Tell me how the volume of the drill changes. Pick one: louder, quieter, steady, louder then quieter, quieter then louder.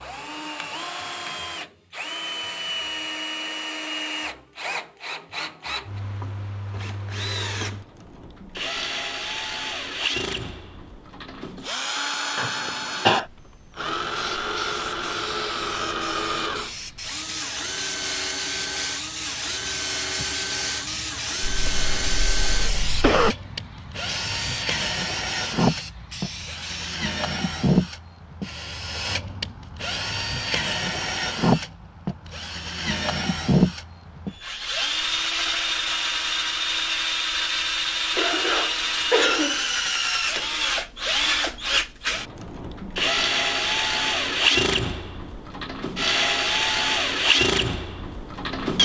louder.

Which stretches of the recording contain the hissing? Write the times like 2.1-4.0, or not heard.
14.1-27.0.